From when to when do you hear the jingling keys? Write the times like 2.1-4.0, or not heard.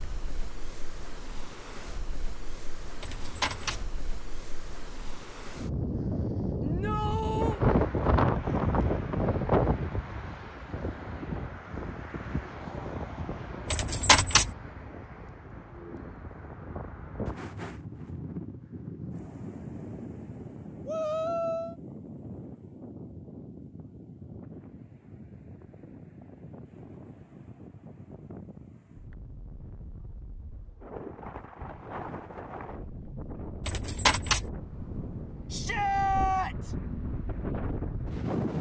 3.0-3.9, 13.7-14.5, 33.6-34.5.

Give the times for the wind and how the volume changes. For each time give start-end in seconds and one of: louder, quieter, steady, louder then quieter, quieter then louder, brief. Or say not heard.
0.0-38.5 quieter then louder.